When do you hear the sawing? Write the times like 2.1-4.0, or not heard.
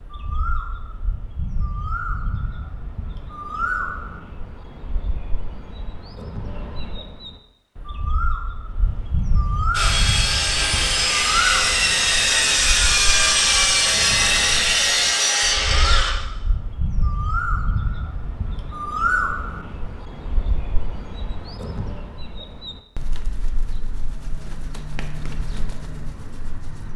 9.7-16.1.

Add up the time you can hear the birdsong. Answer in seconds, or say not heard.
27 s.